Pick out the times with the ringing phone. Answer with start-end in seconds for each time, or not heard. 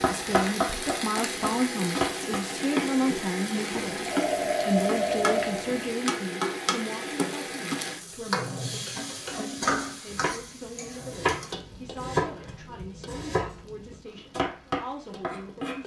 3.7-6.0.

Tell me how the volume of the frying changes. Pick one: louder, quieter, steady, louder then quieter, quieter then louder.
quieter.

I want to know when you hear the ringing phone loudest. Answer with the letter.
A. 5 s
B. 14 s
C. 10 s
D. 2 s
A.